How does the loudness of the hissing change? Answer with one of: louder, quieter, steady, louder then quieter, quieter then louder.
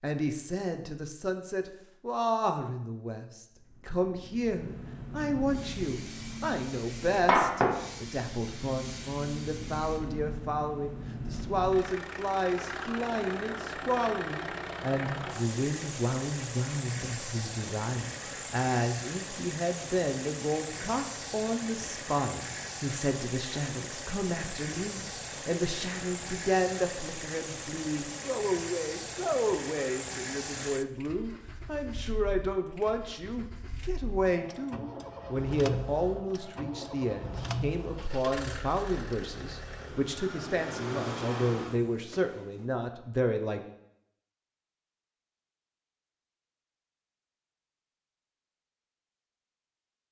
louder then quieter.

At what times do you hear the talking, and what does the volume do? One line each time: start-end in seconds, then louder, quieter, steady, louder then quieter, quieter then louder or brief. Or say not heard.
0.0-43.6 steady.